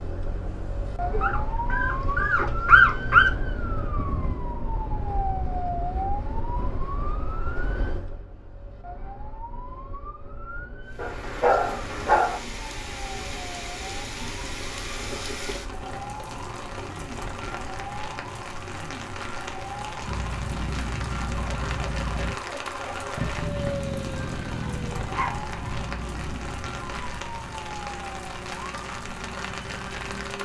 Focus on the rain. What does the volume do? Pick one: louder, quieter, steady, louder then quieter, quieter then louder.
steady.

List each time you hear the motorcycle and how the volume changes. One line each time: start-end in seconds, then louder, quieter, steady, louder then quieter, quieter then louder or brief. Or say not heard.
20.0-30.3 quieter.